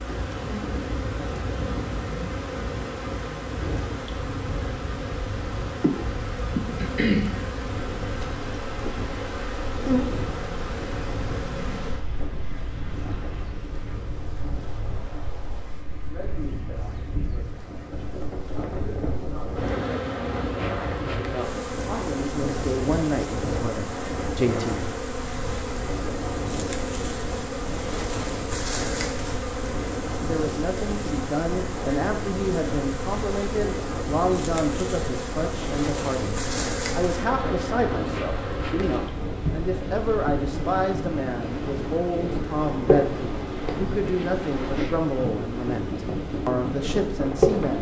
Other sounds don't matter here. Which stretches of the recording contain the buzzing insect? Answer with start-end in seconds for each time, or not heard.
0.0-47.7.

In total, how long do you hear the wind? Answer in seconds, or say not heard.
48 s.